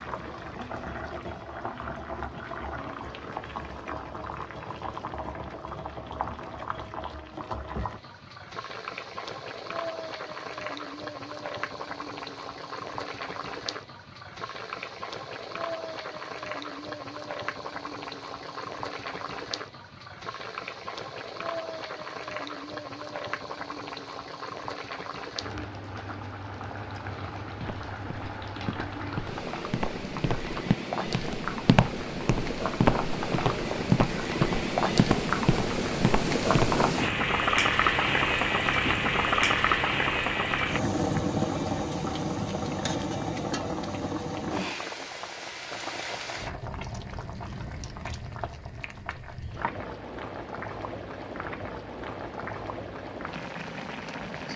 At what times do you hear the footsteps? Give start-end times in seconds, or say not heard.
27.6-36.9.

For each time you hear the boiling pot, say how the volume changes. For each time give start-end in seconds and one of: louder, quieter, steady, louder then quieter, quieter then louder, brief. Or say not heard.
0.0-54.5 louder then quieter.